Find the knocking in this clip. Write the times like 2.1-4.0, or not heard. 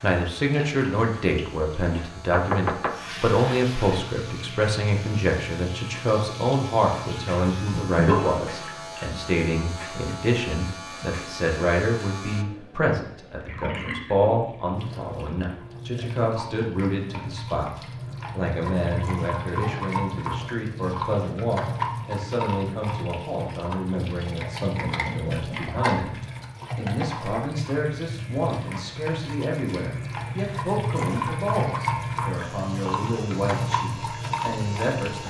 2.3-3.0, 24.8-25.8.